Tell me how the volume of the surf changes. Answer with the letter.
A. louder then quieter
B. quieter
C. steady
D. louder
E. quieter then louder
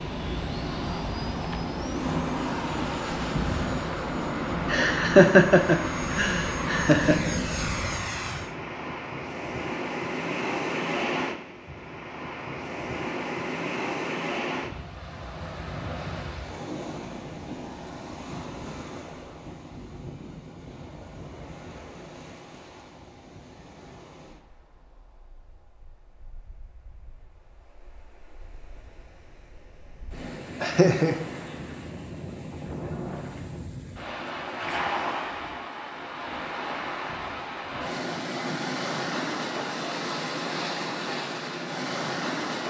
E.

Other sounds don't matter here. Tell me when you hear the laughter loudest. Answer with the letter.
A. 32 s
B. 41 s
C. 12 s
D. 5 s
D.